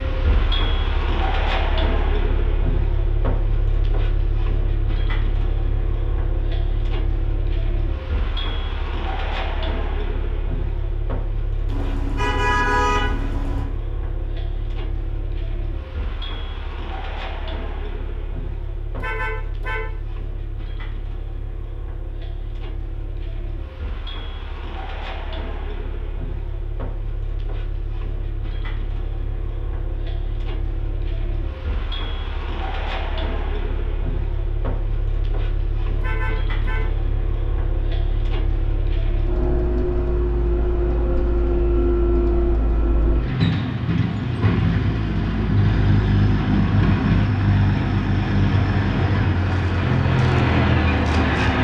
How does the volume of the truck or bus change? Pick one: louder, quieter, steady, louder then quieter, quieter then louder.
quieter then louder.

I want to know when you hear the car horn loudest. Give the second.
13 s.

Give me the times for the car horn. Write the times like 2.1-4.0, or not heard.
11.7-13.7, 18.9-19.9, 36.0-36.9.